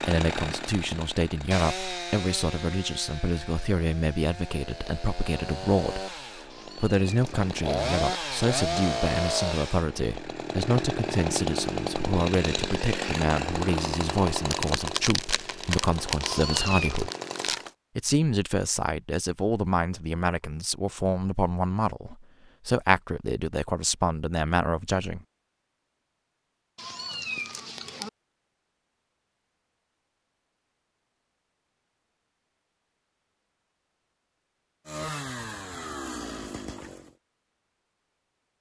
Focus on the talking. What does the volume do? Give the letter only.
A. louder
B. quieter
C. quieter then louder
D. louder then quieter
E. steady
E.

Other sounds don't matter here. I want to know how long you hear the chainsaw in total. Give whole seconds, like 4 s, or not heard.
20 s.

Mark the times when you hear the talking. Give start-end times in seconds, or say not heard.
0.0-6.1, 6.8-17.1, 17.9-25.2.